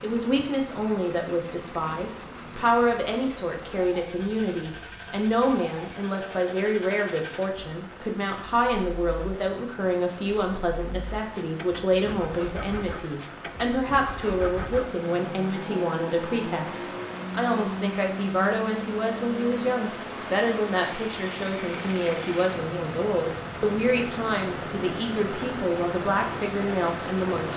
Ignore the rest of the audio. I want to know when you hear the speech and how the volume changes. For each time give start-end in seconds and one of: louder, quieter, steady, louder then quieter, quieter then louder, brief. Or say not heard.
0.0-27.5 steady.